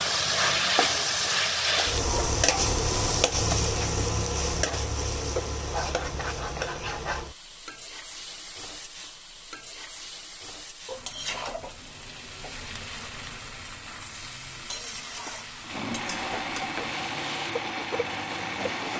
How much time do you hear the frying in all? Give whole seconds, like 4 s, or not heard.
19 s.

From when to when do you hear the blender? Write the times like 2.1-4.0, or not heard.
15.6-18.9.